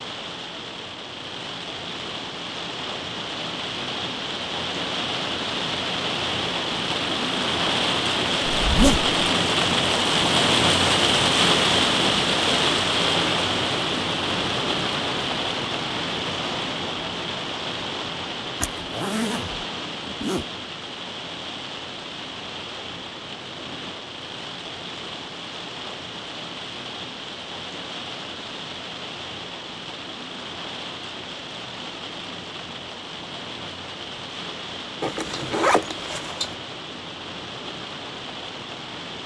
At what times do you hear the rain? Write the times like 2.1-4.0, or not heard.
0.0-39.2.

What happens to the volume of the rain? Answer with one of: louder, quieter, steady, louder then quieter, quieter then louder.
louder then quieter.